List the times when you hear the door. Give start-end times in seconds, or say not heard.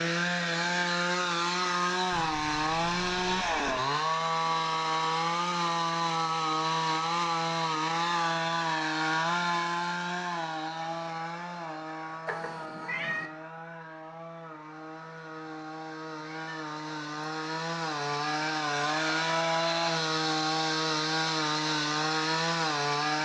not heard.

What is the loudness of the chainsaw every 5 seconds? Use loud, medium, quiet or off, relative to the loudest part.
loud, loud, medium, loud, loud.